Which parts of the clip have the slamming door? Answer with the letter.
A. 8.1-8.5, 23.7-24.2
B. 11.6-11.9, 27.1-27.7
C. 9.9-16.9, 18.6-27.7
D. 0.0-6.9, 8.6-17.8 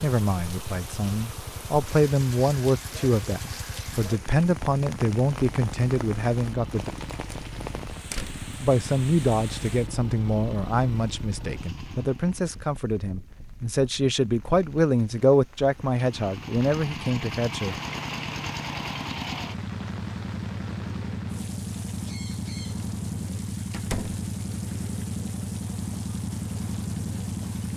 A.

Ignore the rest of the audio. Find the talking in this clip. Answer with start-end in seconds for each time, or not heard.
0.0-6.9, 8.6-17.8.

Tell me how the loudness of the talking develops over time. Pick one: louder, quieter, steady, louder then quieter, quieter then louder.
steady.